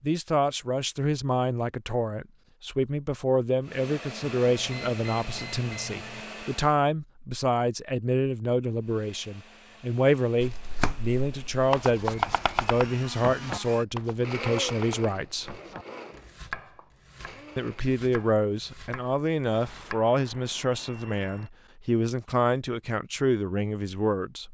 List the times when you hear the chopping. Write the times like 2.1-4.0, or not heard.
10.4-20.0.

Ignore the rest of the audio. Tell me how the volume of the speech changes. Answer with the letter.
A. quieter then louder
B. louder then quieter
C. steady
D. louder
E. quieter
C.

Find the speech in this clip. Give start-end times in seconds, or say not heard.
0.0-15.6, 17.6-24.4.